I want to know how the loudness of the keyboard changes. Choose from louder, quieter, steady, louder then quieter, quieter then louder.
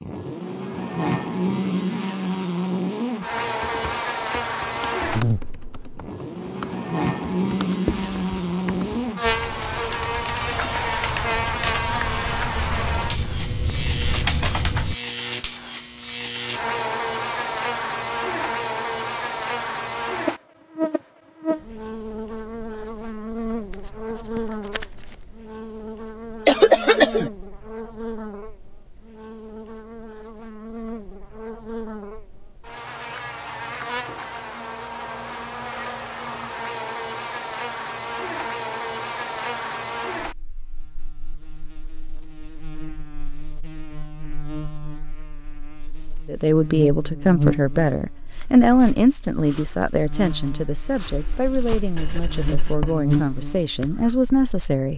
louder.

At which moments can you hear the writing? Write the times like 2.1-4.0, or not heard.
7.8-9.1, 23.7-25.1, 51.1-53.0.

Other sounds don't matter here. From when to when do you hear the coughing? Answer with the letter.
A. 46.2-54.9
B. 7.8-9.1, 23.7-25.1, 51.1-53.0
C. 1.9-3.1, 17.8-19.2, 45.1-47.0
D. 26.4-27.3
D.